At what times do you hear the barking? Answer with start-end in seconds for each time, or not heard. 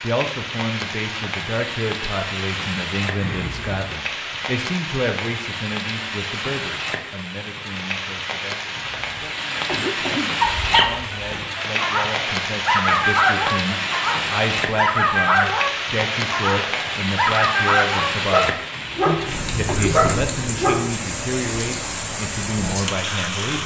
10.4-20.9.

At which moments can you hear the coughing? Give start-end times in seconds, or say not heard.
3.2-3.9, 8.7-10.4, 18.7-20.2.